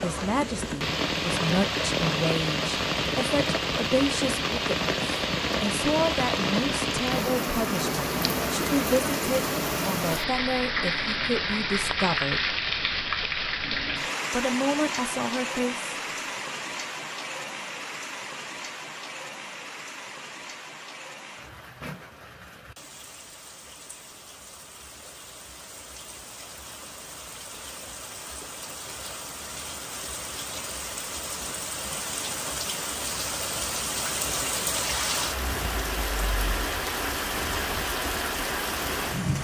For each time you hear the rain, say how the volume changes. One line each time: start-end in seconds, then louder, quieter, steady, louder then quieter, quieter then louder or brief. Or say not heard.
0.0-39.4 quieter then louder.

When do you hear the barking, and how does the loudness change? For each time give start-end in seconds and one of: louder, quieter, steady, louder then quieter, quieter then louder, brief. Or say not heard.
not heard.